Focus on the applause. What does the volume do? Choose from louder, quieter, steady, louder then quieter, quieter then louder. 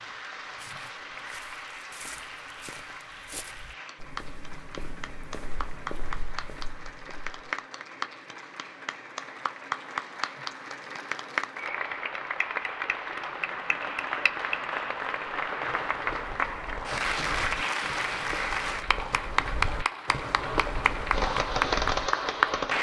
louder.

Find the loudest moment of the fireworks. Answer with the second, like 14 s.
22 s.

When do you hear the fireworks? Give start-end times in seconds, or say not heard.
20.4-22.7.